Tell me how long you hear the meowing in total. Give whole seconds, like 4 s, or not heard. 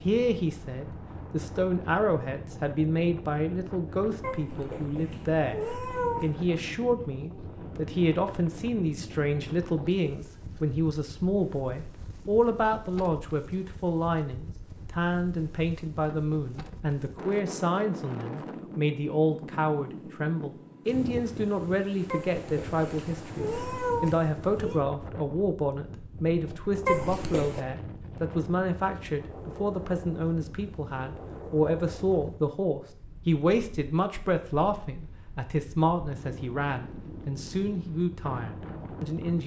6 s.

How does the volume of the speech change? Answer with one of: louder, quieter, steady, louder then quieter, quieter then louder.
steady.